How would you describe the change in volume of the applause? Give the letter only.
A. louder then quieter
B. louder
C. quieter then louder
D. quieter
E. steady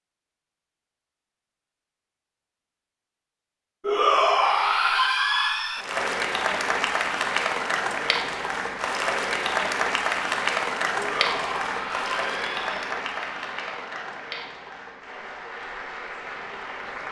D.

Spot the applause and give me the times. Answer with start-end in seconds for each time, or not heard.
5.8-17.0.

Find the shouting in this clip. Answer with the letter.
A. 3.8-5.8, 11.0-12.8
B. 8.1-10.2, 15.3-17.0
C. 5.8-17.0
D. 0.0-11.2
A.